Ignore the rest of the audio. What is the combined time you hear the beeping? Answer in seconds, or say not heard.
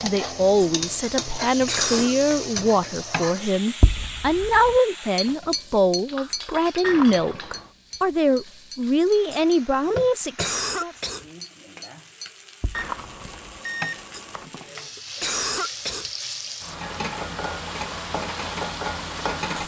3 s.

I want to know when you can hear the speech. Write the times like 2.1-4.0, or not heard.
0.0-10.9.